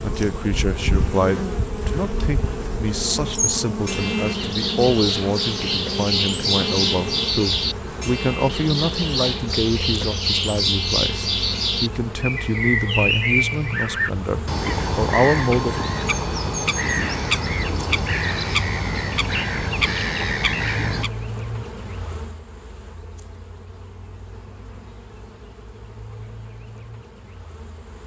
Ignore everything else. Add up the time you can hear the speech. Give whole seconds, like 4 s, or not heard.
16 s.